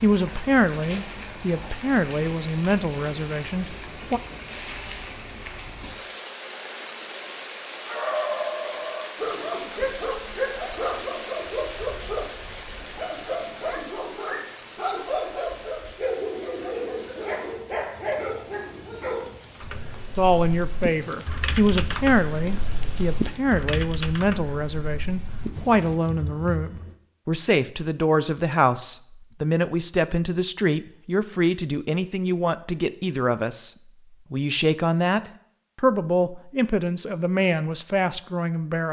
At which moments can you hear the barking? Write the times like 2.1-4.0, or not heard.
7.8-19.4.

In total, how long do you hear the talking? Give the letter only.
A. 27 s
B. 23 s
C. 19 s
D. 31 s
B.